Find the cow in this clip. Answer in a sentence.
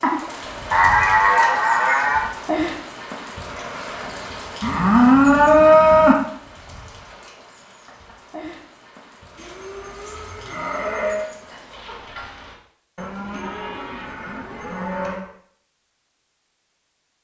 You can hear the cow from 0.7 to 2.2 s, from 4.6 to 6.2 s, from 9.3 to 11.3 s and from 12.9 to 15.2 s.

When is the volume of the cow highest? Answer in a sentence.
The loudest moment of the cow is at 6 seconds.